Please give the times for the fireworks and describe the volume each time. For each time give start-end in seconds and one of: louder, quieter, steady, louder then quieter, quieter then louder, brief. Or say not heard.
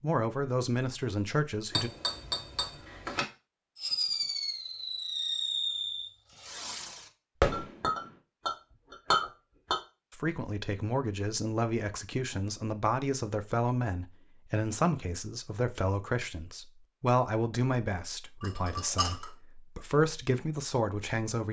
3.8-8.1 quieter then louder.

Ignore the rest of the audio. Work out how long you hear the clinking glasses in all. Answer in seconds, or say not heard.
5 s.